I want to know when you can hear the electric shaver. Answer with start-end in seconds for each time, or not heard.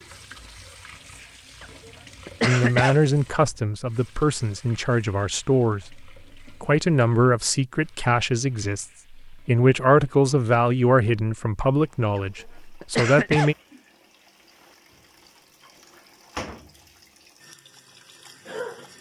not heard.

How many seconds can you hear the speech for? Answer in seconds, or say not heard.
11 s.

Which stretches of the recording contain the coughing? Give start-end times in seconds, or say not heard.
1.6-3.0, 12.2-13.5.